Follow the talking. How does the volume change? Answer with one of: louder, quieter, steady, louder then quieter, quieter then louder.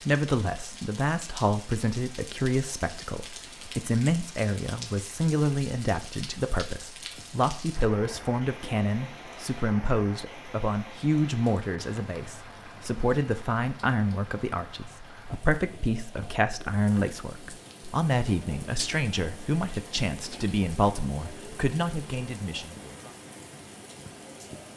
steady.